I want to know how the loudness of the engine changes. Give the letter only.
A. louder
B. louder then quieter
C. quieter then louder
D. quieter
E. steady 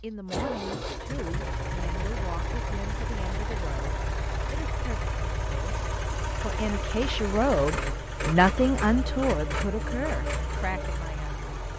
E.